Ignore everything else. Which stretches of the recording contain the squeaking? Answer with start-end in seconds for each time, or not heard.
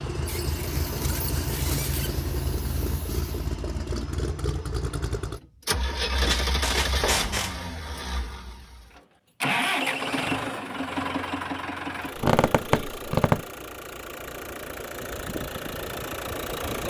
0.2-2.1, 6.2-7.5, 12.2-13.4.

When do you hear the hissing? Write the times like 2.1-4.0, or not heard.
0.0-3.5.